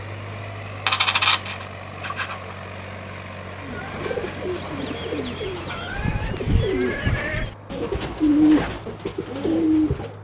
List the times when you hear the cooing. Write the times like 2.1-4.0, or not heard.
3.6-10.1.